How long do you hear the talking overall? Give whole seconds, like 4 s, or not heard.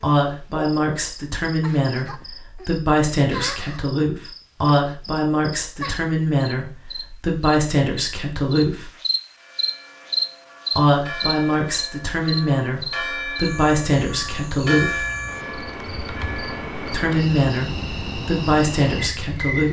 16 s.